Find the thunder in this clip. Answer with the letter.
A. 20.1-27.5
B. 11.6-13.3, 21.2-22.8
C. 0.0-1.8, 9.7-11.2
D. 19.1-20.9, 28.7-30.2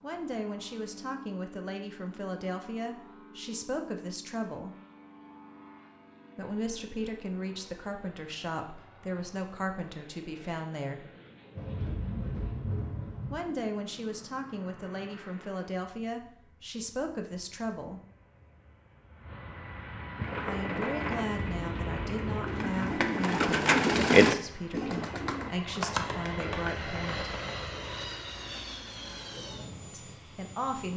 B.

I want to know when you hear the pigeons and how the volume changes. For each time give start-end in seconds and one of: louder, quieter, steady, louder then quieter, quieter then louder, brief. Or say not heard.
20.1-27.5 louder then quieter.